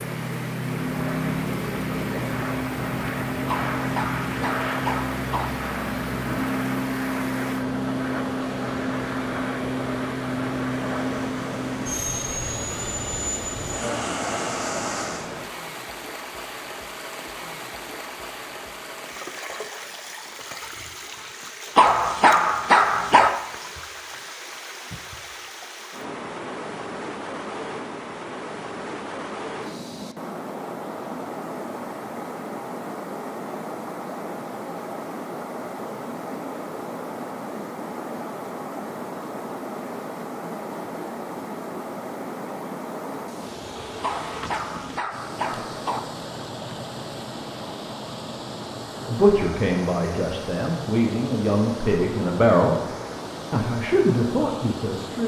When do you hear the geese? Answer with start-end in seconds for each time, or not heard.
not heard.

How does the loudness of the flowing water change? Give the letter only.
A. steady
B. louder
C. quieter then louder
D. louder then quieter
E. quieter
A.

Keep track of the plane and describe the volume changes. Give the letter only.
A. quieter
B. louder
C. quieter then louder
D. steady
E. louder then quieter
D.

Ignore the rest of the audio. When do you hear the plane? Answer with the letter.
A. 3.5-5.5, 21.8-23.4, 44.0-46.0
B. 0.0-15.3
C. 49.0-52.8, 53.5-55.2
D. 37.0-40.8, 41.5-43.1
B.